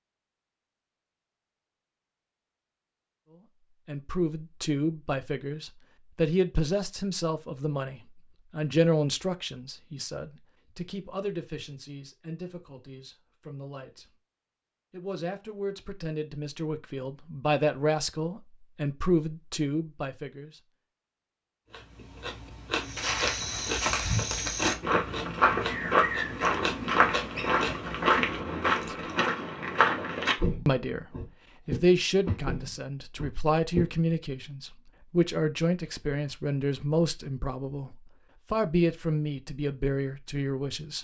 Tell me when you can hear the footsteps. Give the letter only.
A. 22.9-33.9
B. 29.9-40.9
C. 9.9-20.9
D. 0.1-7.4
A.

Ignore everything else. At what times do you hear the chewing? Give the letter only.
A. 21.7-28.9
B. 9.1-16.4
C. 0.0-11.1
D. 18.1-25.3
A.